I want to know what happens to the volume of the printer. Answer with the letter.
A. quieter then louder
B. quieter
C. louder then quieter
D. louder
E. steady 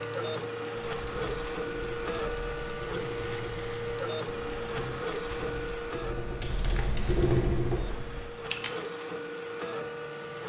A.